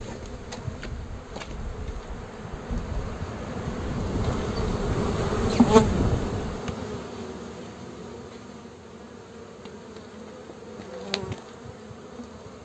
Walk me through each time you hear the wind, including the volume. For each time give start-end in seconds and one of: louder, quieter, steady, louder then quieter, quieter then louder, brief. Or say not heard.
0.2-6.7 louder.